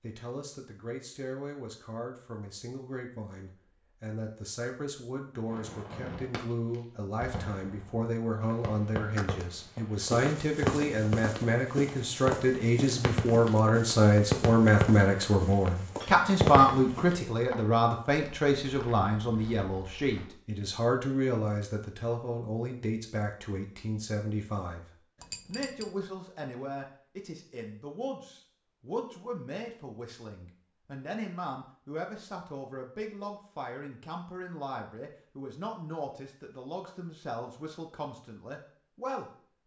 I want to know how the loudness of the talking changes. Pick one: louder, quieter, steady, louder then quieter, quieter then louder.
louder then quieter.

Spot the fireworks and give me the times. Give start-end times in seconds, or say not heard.
5.5-17.1.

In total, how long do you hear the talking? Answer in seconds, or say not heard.
39 s.